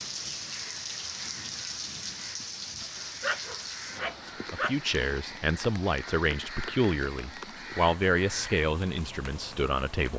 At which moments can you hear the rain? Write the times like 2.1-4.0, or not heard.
0.0-10.1.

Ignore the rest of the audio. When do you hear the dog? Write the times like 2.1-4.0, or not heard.
2.8-4.8.